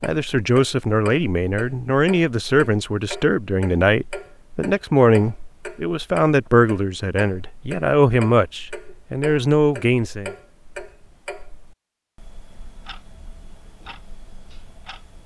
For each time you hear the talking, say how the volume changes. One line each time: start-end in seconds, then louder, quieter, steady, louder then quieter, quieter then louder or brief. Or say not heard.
0.0-10.3 steady.